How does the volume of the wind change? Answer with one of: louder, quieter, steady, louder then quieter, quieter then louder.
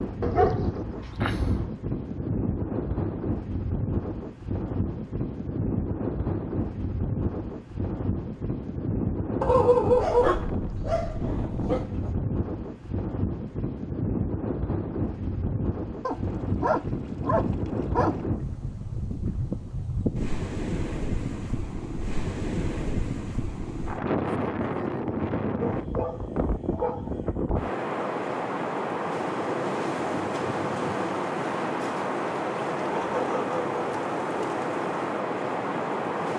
steady.